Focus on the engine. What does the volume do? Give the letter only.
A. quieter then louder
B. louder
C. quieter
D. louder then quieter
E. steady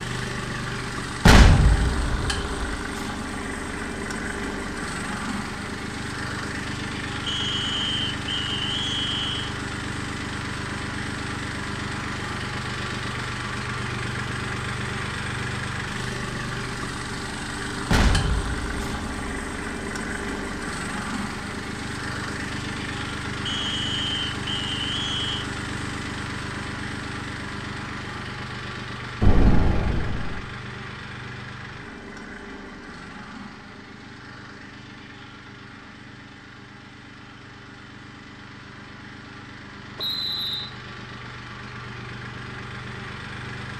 C.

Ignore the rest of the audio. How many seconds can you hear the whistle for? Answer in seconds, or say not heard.
5 s.